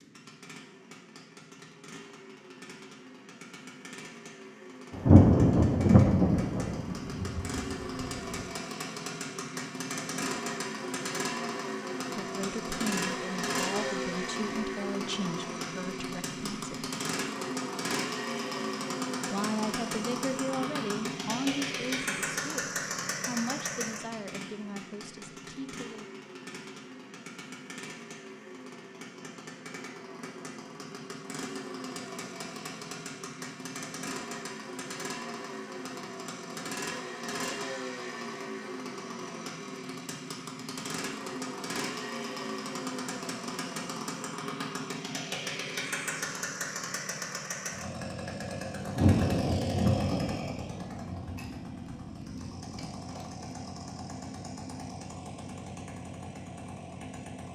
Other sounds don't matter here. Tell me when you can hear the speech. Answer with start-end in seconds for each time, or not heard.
12.1-16.9, 19.3-26.1.